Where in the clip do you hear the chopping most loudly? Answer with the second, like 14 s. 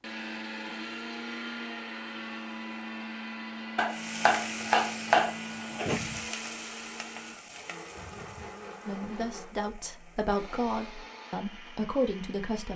5 s.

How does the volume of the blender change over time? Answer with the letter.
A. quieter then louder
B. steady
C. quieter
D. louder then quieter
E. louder
C.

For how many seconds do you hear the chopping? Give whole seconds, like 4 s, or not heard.
2 s.